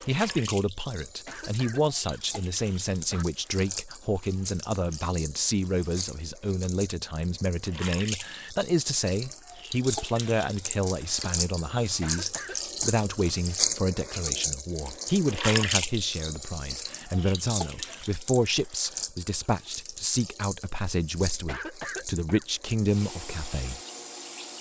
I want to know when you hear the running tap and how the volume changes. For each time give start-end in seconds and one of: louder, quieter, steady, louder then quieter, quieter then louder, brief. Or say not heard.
0.0-24.5 louder then quieter.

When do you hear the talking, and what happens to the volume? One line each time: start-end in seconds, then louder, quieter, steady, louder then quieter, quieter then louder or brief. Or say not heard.
0.1-23.8 steady.